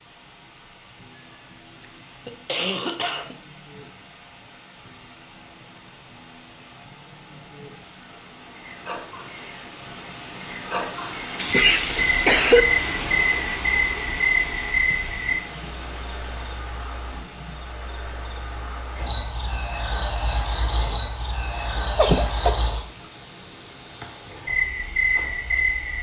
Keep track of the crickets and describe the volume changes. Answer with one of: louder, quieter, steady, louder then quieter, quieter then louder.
louder.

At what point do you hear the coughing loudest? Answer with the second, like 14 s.
12 s.